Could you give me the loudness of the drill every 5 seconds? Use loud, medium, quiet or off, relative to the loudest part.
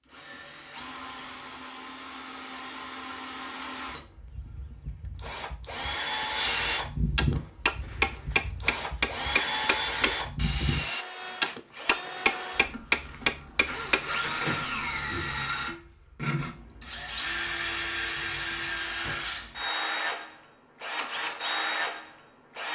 medium, loud, loud, loud, loud.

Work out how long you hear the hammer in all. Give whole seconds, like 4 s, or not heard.
8 s.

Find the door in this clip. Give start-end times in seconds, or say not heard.
14.2-15.2.